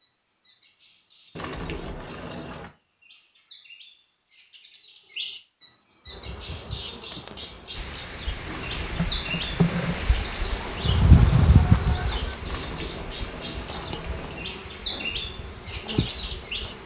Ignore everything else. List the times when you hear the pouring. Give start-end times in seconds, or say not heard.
1.4-2.7, 8.4-9.3, 12.4-14.4.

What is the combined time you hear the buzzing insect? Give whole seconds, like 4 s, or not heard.
11 s.